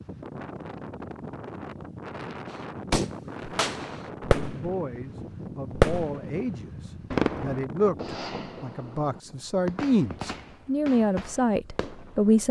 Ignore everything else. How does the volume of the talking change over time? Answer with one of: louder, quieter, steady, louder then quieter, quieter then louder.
louder.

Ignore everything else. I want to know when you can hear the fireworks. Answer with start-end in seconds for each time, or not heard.
2.5-5.0, 5.7-6.5, 7.1-12.3.